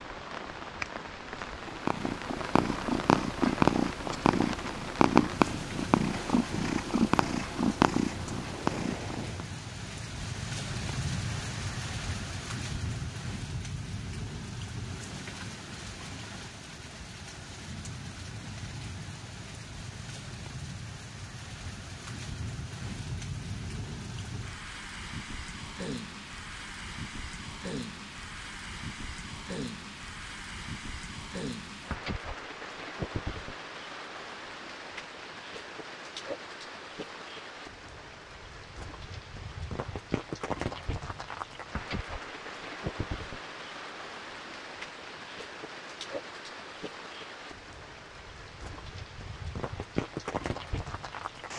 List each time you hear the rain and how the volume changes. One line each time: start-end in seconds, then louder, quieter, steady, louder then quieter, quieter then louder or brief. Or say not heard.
0.0-51.5 steady.